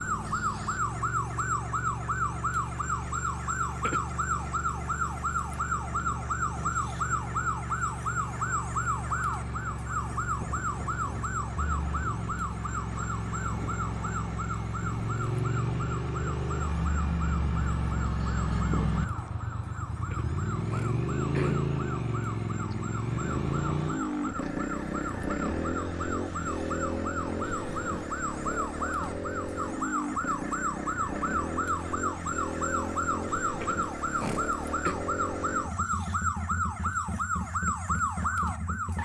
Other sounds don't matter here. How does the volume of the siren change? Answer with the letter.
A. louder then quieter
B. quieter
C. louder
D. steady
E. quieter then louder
E.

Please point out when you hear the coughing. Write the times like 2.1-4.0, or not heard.
3.8-4.5, 20.1-21.6, 33.6-35.0.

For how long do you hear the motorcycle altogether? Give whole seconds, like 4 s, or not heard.
39 s.